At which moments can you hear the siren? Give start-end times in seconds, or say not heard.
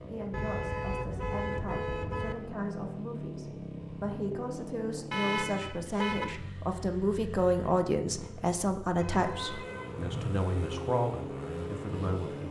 10.4-12.4.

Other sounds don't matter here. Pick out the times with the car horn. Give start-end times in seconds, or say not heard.
0.3-2.4, 5.1-6.3, 9.0-10.4.